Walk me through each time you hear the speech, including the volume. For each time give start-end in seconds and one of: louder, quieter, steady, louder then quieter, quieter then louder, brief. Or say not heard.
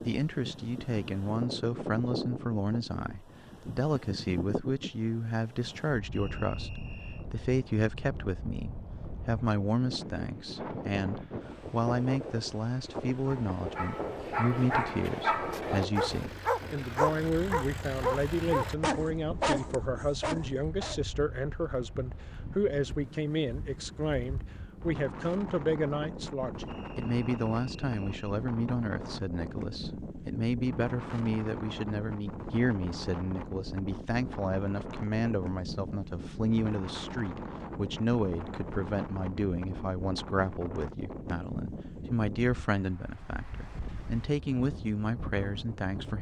0.0-46.1 steady.